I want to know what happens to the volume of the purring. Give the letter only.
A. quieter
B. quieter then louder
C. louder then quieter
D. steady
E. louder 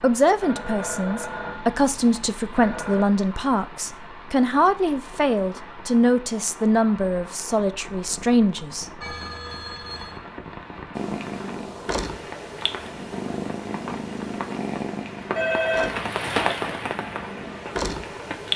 B.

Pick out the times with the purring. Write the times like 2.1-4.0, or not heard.
10.9-18.5.